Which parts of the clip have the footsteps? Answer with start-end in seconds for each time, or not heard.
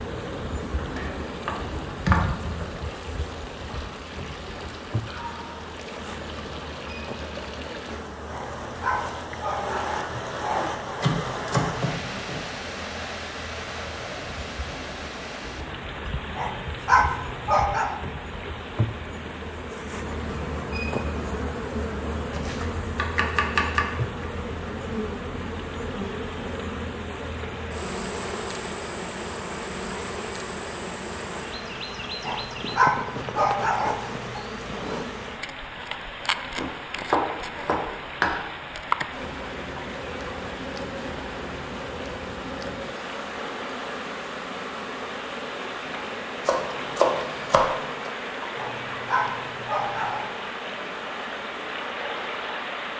not heard.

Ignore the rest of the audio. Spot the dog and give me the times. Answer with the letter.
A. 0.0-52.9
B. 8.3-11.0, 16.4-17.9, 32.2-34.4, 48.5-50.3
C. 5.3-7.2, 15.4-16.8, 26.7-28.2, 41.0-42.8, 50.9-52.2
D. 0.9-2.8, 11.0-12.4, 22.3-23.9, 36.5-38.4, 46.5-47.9
B.